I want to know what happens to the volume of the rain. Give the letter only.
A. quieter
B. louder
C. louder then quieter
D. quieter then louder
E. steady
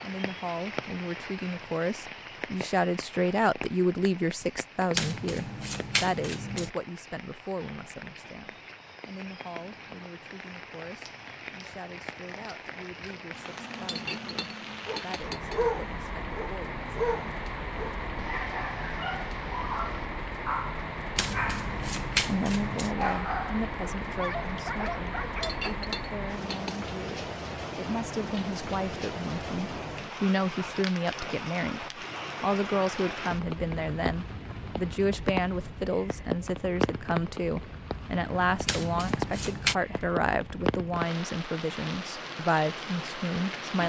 B.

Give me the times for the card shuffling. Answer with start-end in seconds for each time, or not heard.
5.0-6.7, 21.1-22.9, 38.6-39.8.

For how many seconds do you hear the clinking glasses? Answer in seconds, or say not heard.
3 s.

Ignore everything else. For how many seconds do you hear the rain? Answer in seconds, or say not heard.
44 s.